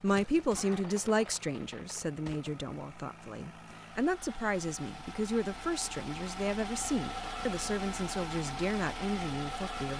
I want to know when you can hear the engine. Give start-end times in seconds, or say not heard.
0.0-9.9.